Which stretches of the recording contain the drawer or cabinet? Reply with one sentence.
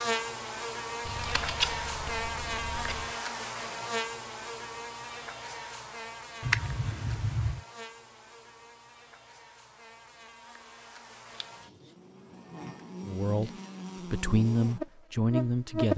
You can't hear the drawer or cabinet here.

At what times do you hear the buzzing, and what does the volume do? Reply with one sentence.
The buzzing can be heard from 0.0 to 15.9 s, getting quieter then louder.